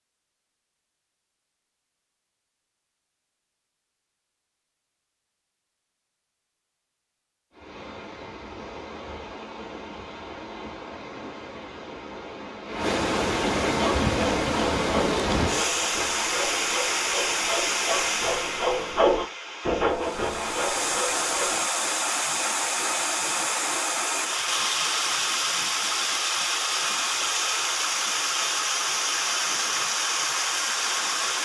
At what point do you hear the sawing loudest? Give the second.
19 s.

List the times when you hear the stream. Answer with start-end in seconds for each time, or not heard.
7.5-31.4.